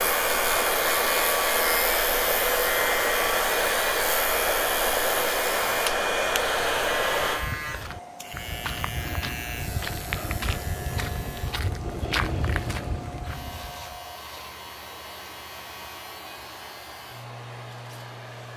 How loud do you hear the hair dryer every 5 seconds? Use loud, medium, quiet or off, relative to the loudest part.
loud, loud, quiet, quiet.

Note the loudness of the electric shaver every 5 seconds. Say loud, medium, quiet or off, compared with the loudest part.
loud, medium, quiet, quiet.